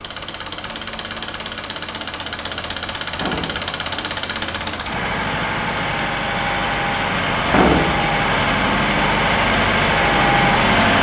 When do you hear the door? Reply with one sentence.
You can hear the door from 3.1 to 3.7 s and from 7.5 to 8.1 s.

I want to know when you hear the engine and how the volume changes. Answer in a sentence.
You can hear the engine from 0.0 to 10.9 s, getting louder.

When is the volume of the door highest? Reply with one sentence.
The volume of the door peaks at 8 seconds.